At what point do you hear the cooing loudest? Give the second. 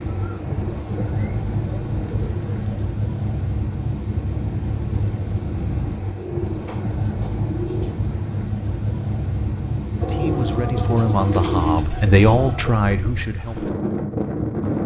12 s.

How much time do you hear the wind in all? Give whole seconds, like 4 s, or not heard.
15 s.